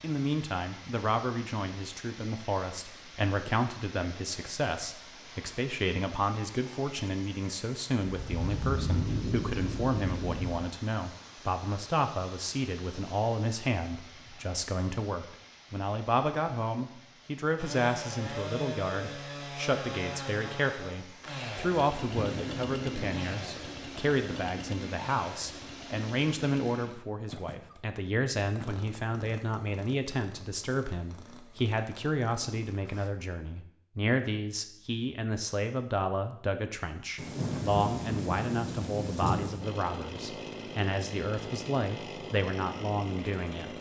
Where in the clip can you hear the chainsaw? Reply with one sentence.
The chainsaw can be heard from 17.6 to 33.1 s and from 39.6 to 43.7 s.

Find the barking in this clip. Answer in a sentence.
You can't hear the barking here.